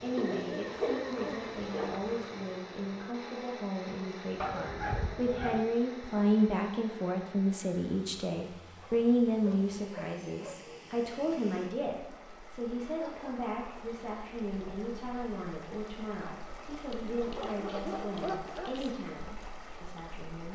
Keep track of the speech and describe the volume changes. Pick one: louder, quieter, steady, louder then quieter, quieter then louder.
louder then quieter.